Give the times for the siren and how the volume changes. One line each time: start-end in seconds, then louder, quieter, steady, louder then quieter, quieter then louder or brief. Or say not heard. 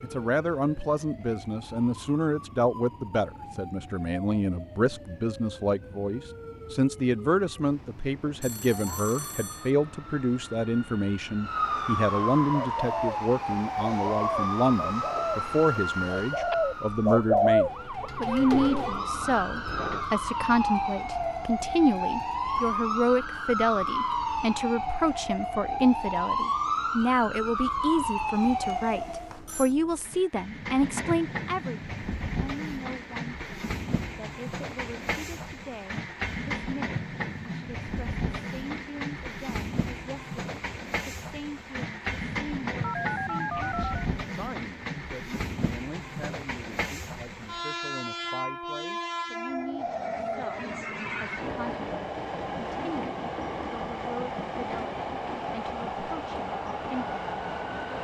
0.0-29.4 louder.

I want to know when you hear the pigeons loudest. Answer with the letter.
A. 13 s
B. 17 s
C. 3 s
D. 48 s
B.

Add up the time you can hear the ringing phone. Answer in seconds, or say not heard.
4 s.